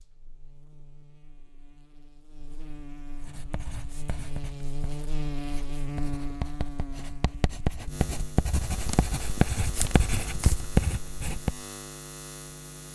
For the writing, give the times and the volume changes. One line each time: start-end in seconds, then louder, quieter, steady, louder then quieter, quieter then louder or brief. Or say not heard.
3.2-11.6 louder.